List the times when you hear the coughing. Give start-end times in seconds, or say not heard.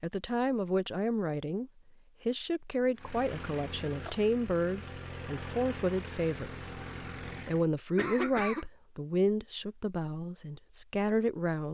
8.0-8.7.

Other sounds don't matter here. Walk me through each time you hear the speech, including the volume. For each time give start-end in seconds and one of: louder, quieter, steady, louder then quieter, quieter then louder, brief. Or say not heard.
0.0-6.8 steady
7.5-11.7 quieter then louder.